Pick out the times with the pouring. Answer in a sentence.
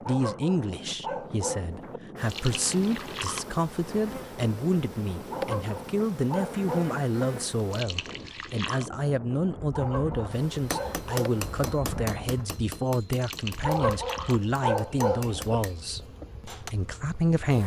You can hear the pouring from 2.2 to 3.5 s, from 7.7 to 8.9 s and from 13.2 to 14.4 s.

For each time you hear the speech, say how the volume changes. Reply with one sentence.
You can hear the speech from 0.1 to 17.6 s, at a steady volume.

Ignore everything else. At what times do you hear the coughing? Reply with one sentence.
The coughing can't be heard in this clip.